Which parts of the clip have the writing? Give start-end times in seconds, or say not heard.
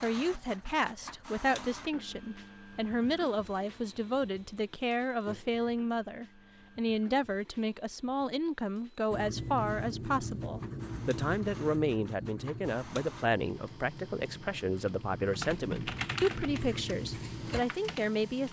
9.1-17.6.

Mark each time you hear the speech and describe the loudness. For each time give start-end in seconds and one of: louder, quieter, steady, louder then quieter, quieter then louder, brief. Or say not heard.
0.0-18.4 steady.